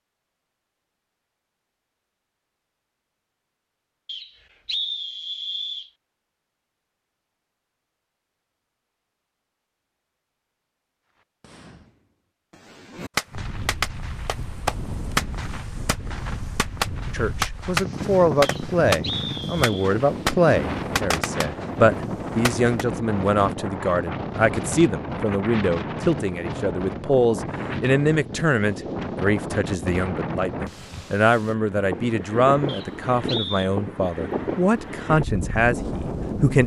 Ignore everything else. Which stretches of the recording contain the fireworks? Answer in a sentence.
You can hear the fireworks from 11.2 to 22.9 s.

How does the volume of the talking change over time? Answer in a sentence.
The loudness of the talking stays about the same.